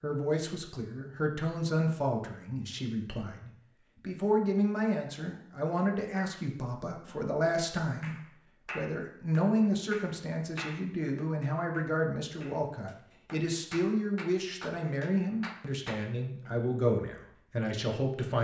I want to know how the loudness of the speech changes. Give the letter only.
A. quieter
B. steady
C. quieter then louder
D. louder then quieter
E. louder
B.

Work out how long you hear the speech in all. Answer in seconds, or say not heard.
18 s.